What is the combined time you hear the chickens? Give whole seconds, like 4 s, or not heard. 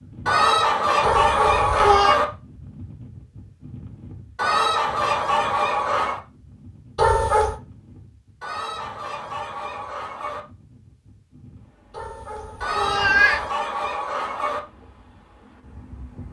8 s.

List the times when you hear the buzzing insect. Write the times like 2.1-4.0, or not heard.
not heard.